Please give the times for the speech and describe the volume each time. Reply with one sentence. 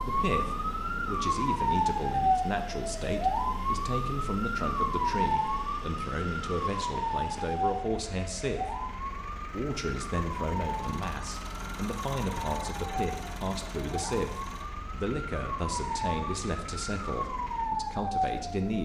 You can hear the speech from 0.0 to 8.8 s, at a steady volume; and from 9.4 to 18.7 s, at a steady volume.